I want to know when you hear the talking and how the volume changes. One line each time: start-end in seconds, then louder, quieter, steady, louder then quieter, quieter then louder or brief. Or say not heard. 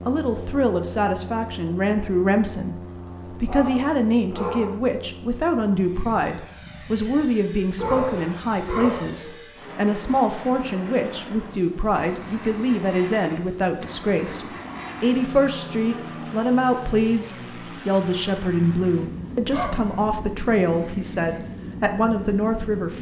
0.1-22.9 steady.